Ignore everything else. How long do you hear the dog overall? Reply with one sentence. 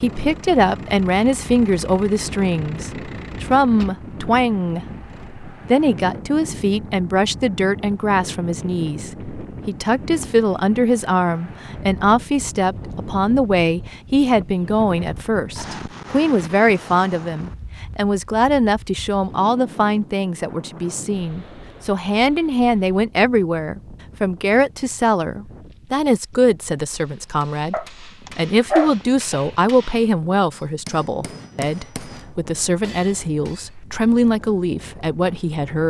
The dog can be heard for 2 seconds in total.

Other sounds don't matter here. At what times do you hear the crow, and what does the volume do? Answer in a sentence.
You can't hear the crow here.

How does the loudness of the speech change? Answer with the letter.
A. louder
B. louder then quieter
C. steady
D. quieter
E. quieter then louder
C.